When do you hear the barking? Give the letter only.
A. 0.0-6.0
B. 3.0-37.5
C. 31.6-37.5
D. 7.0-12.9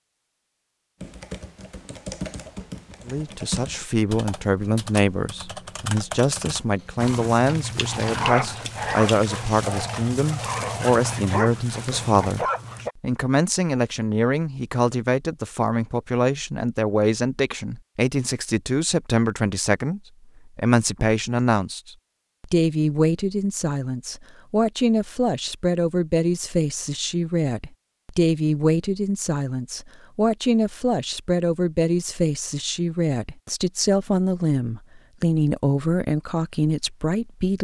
D.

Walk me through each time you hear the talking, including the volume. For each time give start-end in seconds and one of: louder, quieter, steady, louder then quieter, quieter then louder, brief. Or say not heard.
3.0-37.5 steady.